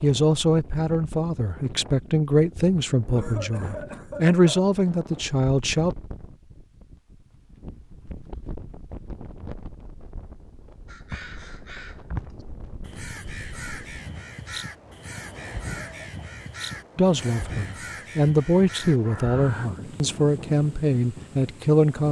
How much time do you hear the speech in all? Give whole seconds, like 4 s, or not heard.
11 s.